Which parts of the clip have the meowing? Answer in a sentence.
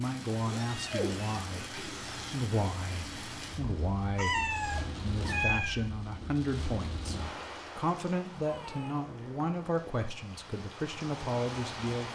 The meowing can be heard from 0.5 to 2.5 s, from 4.2 to 5.8 s and from 8.4 to 10.1 s.